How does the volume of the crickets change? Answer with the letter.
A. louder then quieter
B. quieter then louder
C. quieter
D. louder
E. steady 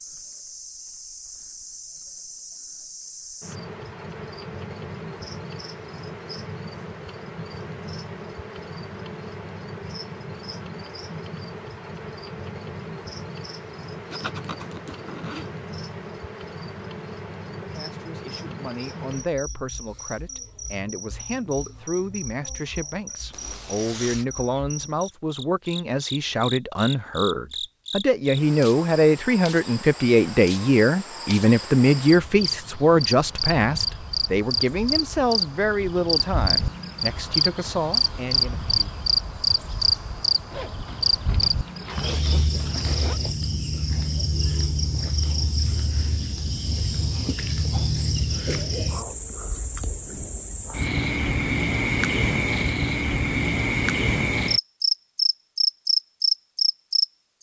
D.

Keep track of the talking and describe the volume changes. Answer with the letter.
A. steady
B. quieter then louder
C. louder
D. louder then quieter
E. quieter
D.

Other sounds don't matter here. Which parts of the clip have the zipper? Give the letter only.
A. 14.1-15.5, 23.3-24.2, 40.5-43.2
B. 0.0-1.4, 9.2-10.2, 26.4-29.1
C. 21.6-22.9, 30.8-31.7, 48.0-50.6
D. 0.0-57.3
A.